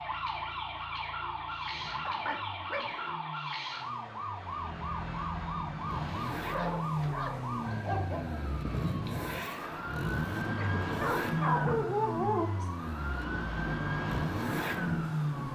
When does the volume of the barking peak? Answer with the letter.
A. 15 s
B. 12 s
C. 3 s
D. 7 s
B.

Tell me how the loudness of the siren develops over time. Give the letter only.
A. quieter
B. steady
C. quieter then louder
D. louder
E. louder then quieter
B.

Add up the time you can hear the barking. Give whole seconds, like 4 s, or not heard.
5 s.